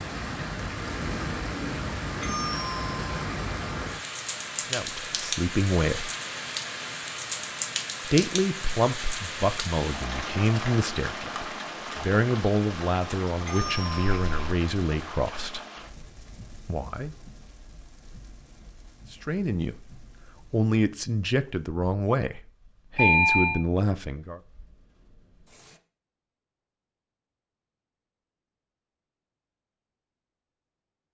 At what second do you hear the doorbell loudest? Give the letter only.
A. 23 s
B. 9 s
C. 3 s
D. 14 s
A.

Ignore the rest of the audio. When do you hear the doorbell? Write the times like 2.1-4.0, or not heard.
2.2-3.0, 13.4-14.3, 22.9-23.6.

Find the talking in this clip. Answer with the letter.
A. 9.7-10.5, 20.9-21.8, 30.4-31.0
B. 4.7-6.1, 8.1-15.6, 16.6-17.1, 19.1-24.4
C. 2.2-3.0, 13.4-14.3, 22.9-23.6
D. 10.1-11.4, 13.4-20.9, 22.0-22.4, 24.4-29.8
B.